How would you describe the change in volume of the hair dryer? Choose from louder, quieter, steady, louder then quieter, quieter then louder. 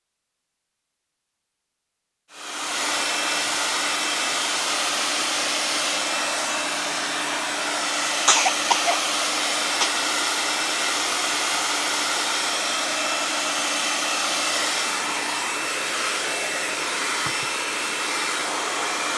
steady.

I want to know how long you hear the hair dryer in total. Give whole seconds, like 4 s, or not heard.
17 s.